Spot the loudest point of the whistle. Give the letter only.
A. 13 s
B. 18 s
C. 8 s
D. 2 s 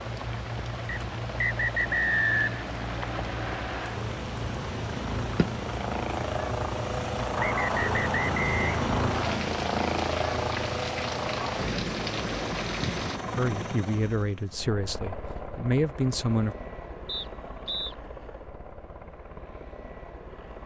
D.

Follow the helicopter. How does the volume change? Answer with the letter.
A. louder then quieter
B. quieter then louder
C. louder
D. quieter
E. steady
A.